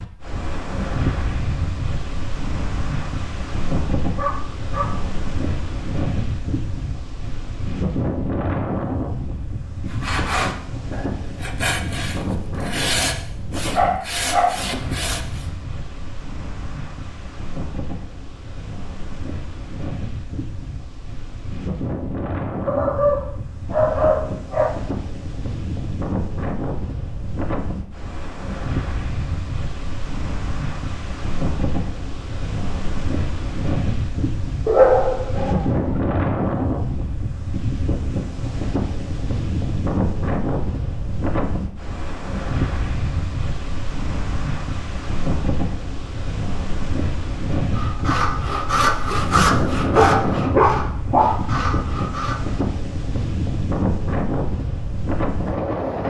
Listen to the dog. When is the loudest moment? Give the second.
35 s.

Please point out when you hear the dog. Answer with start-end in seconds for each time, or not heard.
4.2-5.0, 13.8-14.5, 22.6-24.6, 34.6-36.0, 50.0-51.2.